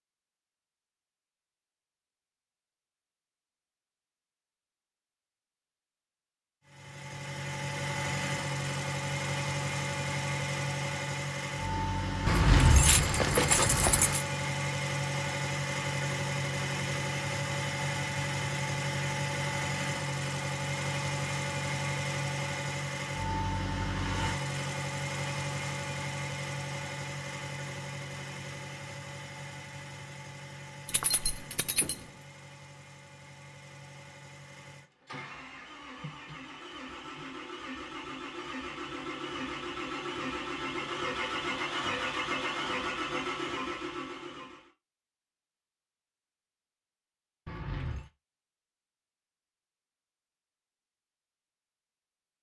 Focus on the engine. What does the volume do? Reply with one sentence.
The loudness of the engine goes down, then up.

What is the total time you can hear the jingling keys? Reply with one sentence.
The jingling keys can be heard for 4 seconds in total.